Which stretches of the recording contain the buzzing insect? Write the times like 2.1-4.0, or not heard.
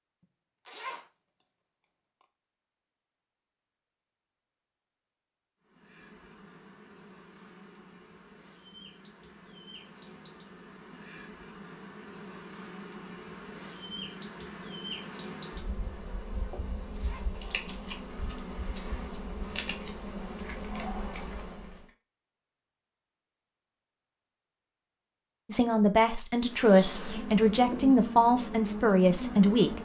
5.6-21.9, 26.4-29.8.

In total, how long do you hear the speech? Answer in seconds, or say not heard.
4 s.